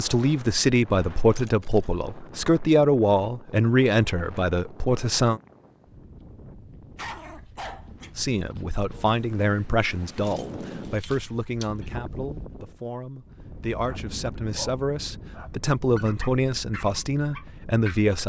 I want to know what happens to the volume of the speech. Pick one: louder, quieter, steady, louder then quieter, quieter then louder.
quieter then louder.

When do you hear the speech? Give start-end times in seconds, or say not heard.
0.0-5.4, 8.2-18.2.